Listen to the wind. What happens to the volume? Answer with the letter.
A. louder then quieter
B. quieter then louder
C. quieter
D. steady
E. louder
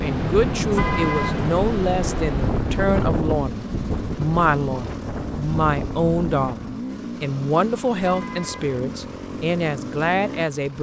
C.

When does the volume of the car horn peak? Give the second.
1 s.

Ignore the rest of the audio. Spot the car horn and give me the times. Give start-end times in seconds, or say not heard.
0.7-1.6, 8.0-8.8.